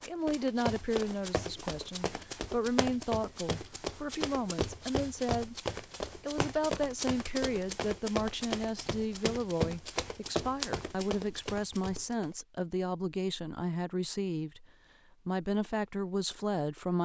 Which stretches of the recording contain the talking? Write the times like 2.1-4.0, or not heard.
0.1-5.5, 6.2-14.7, 15.2-17.0.